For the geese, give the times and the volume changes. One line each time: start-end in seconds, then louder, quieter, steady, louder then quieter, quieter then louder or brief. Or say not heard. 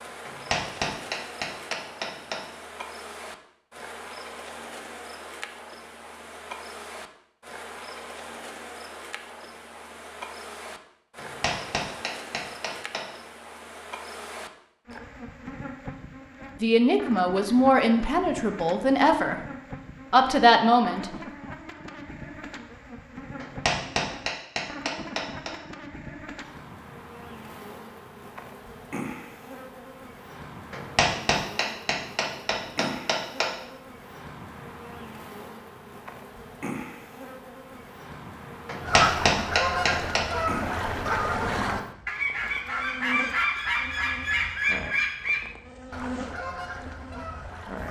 38.8-47.8 quieter.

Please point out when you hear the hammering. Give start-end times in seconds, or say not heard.
0.2-2.4, 11.2-13.1, 23.4-25.5, 30.7-33.5, 38.6-40.2.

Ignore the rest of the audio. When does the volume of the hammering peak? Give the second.
39 s.